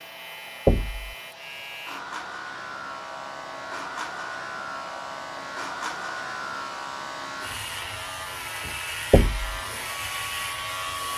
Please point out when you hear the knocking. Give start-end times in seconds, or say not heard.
0.7-1.1, 9.1-9.6.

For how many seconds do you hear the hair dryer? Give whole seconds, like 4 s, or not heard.
11 s.